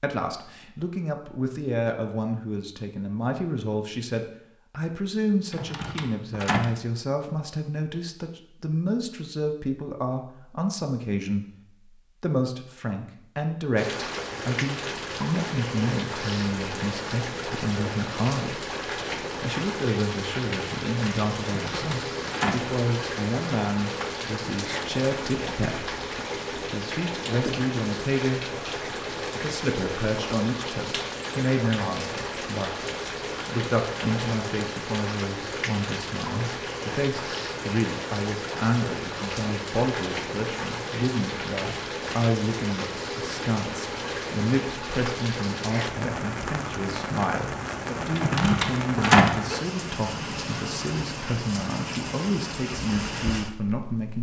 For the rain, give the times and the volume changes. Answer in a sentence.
The rain can be heard from 13.8 to 54.1 s, at a steady volume.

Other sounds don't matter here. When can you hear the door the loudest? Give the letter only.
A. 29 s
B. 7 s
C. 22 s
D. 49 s
D.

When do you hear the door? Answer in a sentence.
The door can be heard from 5.5 to 6.8 s, from 21.4 to 22.7 s and from 48.1 to 49.4 s.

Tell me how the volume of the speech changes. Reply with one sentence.
The loudness of the speech stays about the same.